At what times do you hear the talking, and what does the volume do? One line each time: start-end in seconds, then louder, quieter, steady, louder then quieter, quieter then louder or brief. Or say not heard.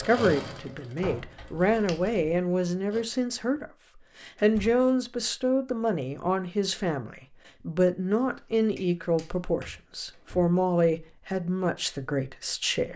0.0-12.9 steady.